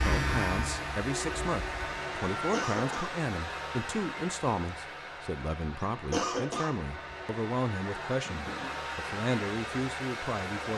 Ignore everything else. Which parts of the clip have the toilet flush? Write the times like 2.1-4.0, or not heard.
8.2-8.8.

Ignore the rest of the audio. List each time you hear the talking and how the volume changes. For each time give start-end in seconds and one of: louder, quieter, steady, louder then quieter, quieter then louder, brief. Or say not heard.
0.0-10.7 steady.